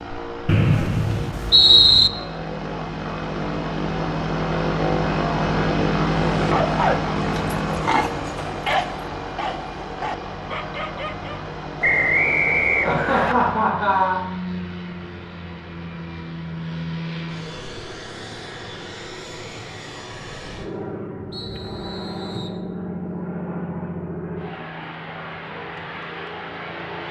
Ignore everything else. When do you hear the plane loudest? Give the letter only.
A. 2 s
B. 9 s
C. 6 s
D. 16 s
C.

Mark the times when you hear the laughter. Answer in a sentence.
You can hear the laughter from 12.8 to 14.2 s.